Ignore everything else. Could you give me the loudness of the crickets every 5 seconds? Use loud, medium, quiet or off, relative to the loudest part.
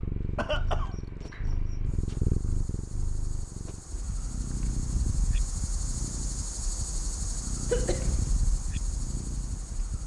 medium, loud.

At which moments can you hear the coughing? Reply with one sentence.
The coughing can be heard from 0.3 to 0.9 s and from 7.7 to 8.3 s.